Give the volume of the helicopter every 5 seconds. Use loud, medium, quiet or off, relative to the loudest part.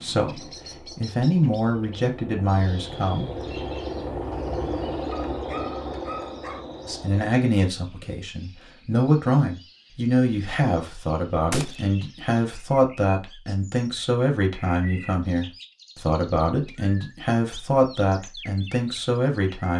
loud, loud, off, off.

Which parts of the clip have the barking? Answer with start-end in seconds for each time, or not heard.
5.1-6.7.